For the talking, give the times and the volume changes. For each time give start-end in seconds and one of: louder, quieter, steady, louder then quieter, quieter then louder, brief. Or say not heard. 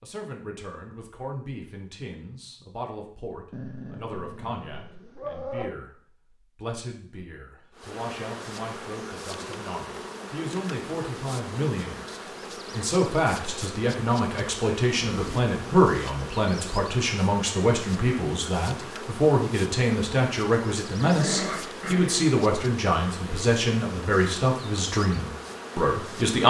0.0-26.4 louder.